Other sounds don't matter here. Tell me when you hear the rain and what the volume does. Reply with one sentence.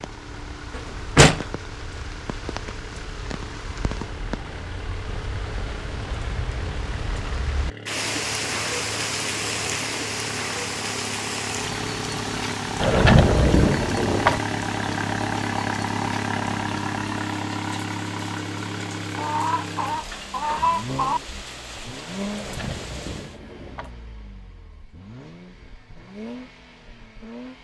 You can hear the rain from 0.0 to 23.4 s, getting louder then quieter.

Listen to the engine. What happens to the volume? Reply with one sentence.
The volume of the engine goes up, then down.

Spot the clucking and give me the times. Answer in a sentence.
You can hear the clucking from 19.1 to 21.2 s.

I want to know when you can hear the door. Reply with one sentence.
The door can be heard from 0.8 to 1.4 s, from 12.8 to 14.4 s and from 22.3 to 23.9 s.